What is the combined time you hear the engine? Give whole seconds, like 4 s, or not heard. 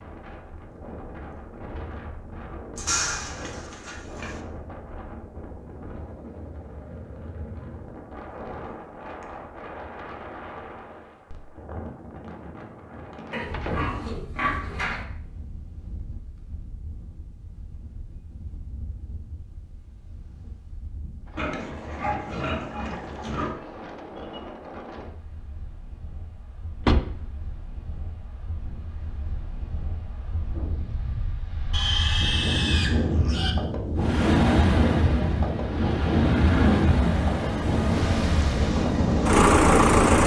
6 s.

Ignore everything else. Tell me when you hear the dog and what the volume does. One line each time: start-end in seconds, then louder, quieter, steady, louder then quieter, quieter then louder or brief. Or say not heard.
not heard.